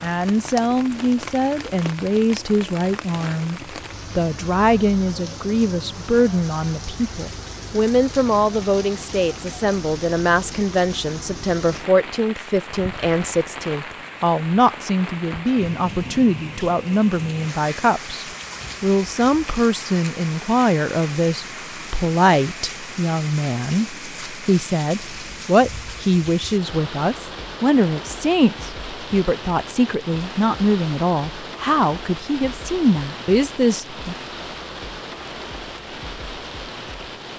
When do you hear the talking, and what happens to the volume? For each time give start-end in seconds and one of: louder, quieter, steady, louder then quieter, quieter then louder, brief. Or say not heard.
0.0-34.1 steady.